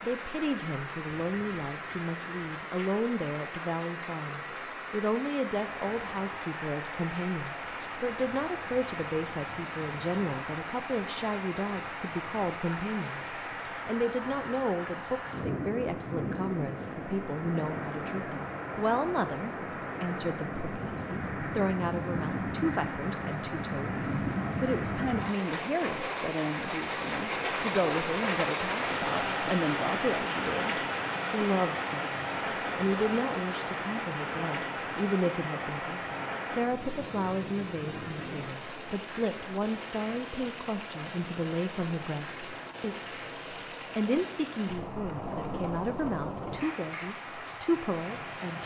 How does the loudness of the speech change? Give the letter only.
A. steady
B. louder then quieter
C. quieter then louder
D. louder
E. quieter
A.